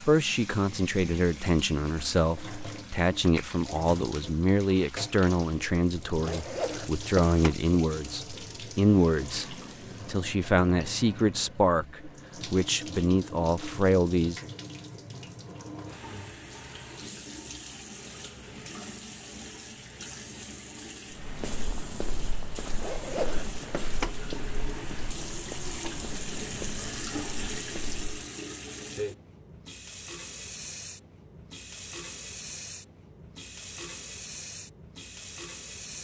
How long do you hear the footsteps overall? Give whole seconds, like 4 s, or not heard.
7 s.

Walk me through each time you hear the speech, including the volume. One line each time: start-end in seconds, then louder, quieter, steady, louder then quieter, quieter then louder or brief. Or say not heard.
0.0-14.4 steady.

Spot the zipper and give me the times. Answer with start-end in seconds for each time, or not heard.
6.1-7.5, 22.6-24.1.